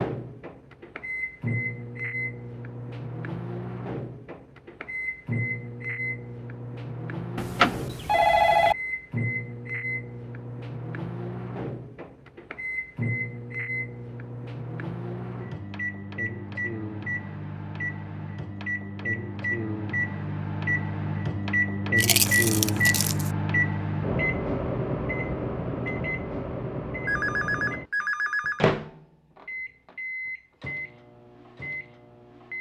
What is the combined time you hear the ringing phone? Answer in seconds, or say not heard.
3 s.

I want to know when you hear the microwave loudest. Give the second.
22 s.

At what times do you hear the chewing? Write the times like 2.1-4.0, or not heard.
21.9-23.3.